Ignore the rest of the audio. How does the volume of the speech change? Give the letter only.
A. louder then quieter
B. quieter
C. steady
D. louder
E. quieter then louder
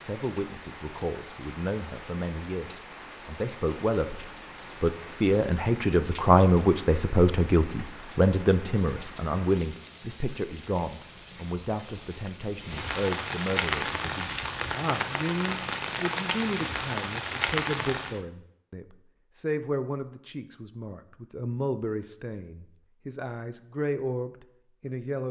A.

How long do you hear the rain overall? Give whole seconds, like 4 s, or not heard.
18 s.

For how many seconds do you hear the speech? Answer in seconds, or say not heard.
25 s.